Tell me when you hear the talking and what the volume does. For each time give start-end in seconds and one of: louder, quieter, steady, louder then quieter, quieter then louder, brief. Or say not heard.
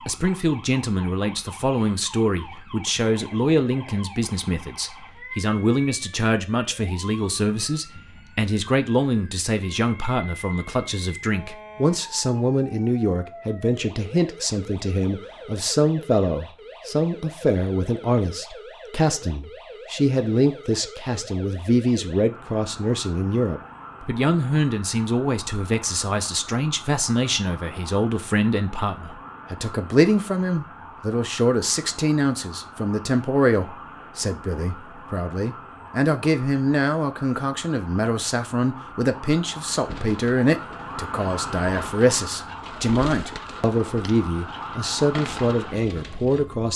0.1-46.7 steady.